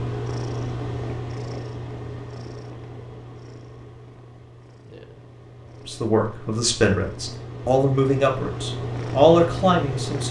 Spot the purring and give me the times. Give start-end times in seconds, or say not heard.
0.0-10.2.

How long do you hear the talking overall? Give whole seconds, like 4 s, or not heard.
4 s.